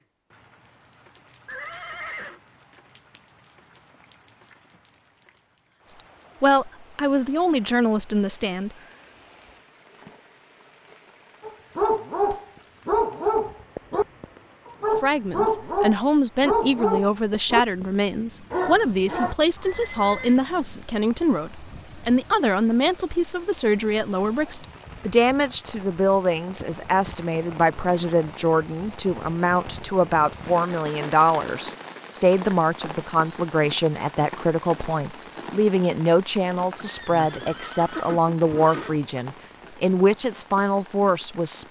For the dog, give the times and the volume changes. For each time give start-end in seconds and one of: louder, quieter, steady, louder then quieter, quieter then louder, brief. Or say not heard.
11.4-17.9 steady
18.5-19.4 brief.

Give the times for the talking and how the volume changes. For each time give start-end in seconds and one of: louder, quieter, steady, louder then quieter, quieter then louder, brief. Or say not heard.
6.4-8.7 brief
14.9-41.6 steady.